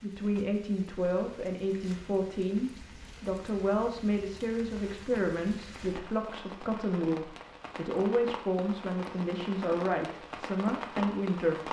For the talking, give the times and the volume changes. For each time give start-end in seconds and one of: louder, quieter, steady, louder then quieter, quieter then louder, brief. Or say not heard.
0.0-11.6 steady.